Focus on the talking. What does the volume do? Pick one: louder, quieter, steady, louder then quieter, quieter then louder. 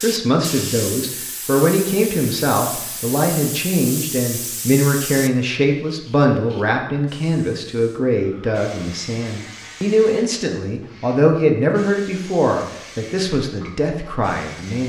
steady.